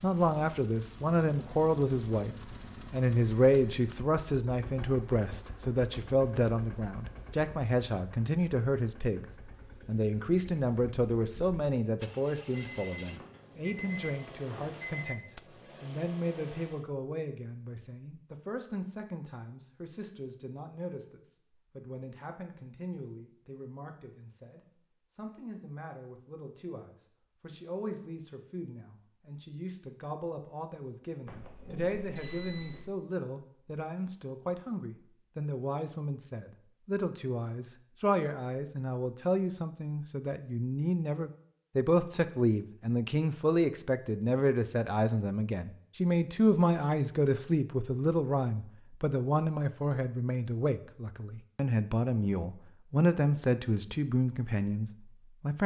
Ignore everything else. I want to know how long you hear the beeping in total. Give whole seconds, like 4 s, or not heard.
4 s.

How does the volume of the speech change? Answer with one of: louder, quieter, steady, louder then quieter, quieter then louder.
quieter then louder.